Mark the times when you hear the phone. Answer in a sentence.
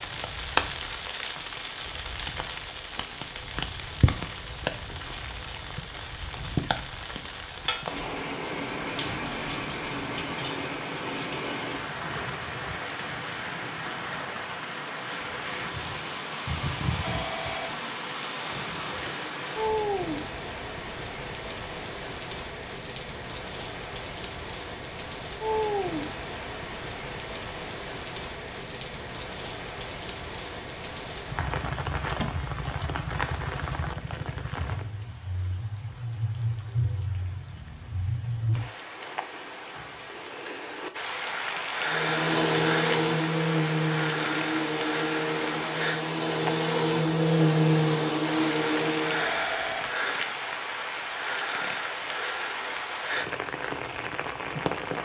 You can hear the phone from 17.0 to 17.8 s and from 49.1 to 49.9 s.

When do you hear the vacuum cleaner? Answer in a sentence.
You can hear the vacuum cleaner from 41.8 to 49.5 s.